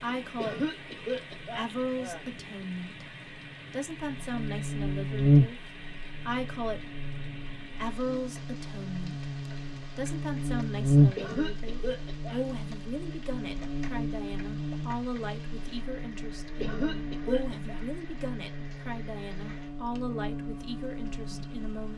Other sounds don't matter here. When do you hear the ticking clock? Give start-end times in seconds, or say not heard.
not heard.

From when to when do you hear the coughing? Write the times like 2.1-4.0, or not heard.
0.3-2.2, 11.2-12.4, 16.6-17.8.